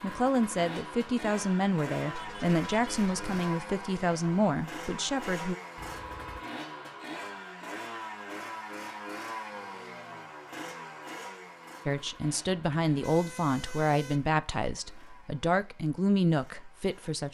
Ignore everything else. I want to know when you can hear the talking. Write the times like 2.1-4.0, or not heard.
0.0-5.5, 11.8-17.2.